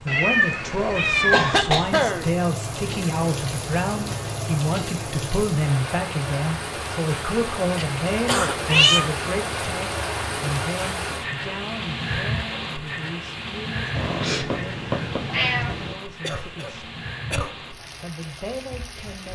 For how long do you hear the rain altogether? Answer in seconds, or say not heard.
19 s.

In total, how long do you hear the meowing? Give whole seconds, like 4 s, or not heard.
4 s.